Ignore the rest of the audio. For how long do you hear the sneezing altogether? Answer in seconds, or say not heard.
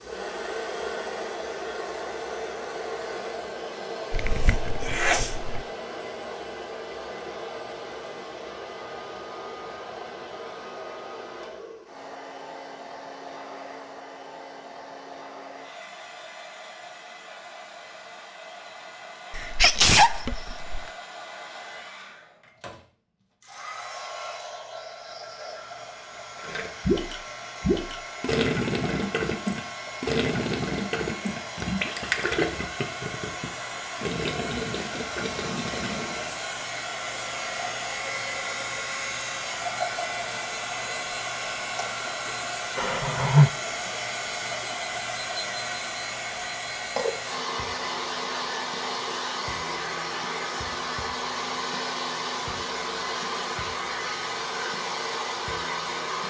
4 s.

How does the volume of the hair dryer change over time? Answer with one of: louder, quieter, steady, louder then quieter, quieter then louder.
quieter then louder.